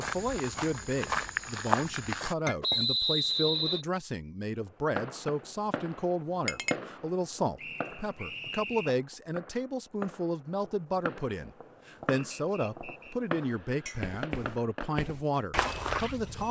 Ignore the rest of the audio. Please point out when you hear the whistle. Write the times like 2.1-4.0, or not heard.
2.6-3.9, 7.5-8.9, 12.2-13.2.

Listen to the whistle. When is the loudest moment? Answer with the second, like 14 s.
3 s.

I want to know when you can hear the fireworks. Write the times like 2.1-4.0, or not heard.
5.0-14.9.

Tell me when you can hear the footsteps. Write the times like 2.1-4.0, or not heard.
0.0-2.4, 14.0-16.4.